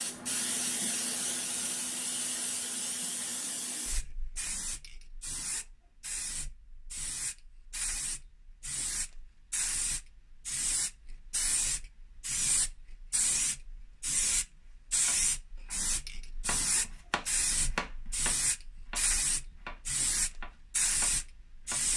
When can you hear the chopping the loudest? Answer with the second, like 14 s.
18 s.